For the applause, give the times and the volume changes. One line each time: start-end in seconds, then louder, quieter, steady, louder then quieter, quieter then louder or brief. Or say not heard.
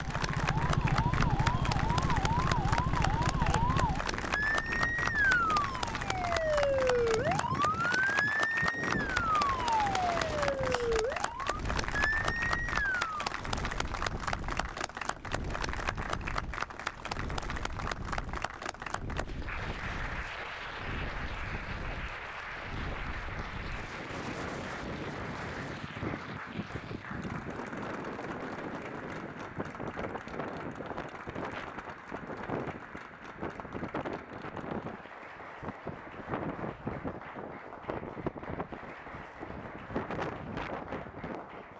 0.0-41.7 quieter.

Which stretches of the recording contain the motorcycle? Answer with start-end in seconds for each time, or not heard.
not heard.